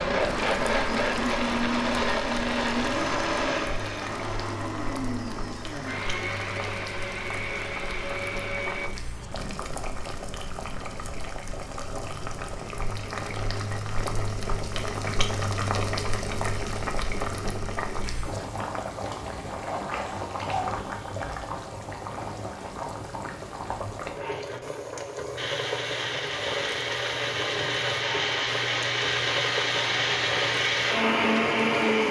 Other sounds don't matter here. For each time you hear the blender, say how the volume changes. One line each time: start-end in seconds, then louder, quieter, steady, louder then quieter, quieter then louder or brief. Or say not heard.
0.0-8.9 quieter
25.4-32.0 louder.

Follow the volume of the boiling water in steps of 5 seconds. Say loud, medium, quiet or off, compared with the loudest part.
medium, medium, loud, loud, loud, loud, loud.